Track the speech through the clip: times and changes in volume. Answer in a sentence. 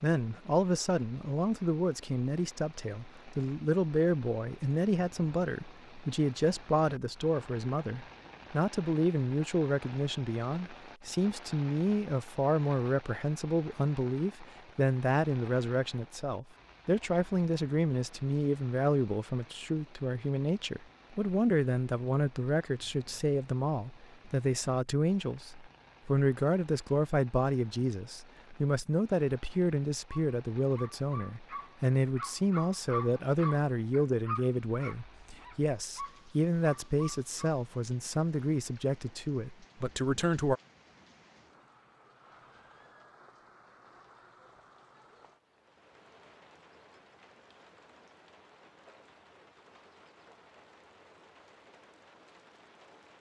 The speech can be heard from 0.0 to 40.6 s, at a steady volume.